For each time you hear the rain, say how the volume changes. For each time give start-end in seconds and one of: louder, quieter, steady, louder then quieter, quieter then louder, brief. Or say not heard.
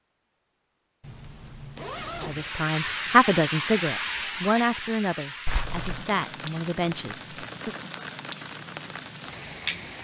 2.2-9.9 quieter.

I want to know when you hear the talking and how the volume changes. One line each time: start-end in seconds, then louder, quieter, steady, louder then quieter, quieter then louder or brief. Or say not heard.
2.2-7.8 quieter.